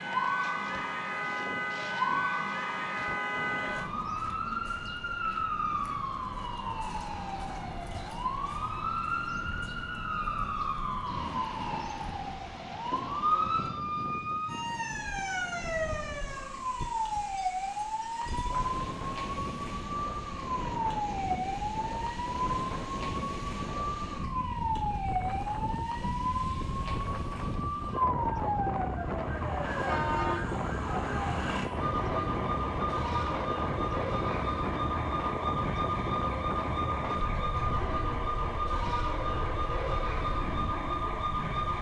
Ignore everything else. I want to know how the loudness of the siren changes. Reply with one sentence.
The loudness of the siren stays about the same.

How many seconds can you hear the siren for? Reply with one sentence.
You can hear the siren for 42 seconds altogether.